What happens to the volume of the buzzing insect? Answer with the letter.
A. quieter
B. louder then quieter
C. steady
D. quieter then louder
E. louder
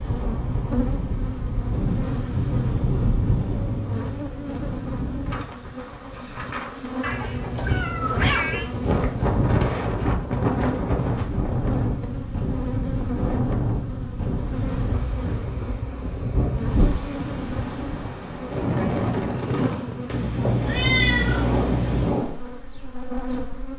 C.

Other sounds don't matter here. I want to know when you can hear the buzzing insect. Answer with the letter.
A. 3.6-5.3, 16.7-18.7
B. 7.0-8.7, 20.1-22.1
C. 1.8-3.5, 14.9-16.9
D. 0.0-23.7
D.